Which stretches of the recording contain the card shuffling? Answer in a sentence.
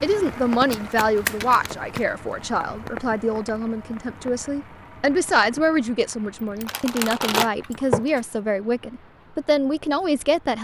You can hear the card shuffling from 0.7 to 2.0 s and from 6.6 to 8.2 s.